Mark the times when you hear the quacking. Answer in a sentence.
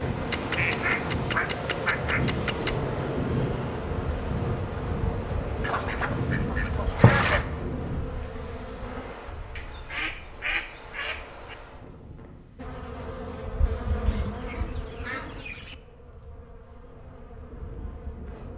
The quacking can be heard from 0.3 to 2.8 s, from 5.6 to 7.5 s, from 9.6 to 11.6 s and from 14.1 to 15.8 s.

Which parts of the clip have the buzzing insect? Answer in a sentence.
The buzzing insect can be heard from 0.0 to 9.2 s and from 12.6 to 18.5 s.